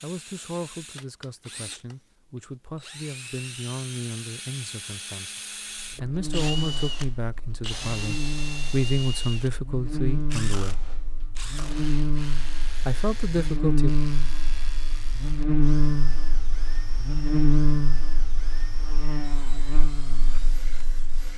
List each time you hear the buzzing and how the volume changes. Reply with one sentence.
You can hear the buzzing from 5.8 to 21.3 s, getting louder then quieter.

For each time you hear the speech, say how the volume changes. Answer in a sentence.
You can hear the speech from 0.0 to 10.8 s, getting louder; and briefly from 12.8 to 13.9 s.